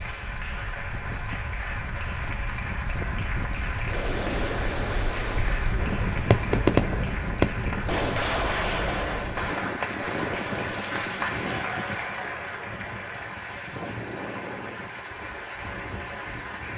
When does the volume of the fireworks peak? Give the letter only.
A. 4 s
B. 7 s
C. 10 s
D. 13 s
B.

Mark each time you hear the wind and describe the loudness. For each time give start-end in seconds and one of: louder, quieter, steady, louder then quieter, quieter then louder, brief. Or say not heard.
0.0-16.7 louder then quieter.